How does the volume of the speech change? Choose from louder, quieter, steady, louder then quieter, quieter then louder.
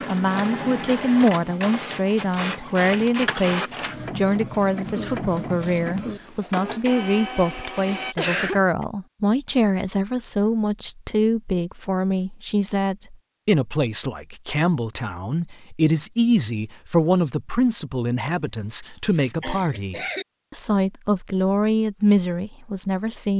steady.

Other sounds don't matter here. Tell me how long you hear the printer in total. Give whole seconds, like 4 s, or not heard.
8 s.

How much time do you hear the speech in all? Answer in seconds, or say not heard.
23 s.